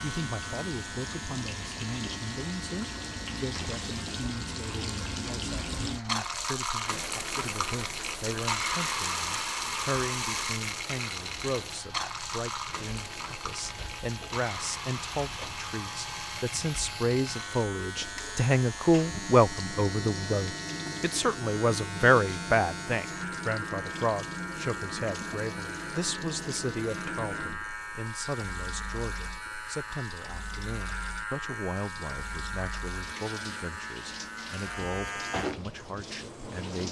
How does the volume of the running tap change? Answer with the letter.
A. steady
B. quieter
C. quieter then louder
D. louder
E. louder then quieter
B.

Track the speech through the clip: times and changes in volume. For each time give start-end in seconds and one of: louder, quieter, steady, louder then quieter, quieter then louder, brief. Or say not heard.
0.0-36.8 louder then quieter.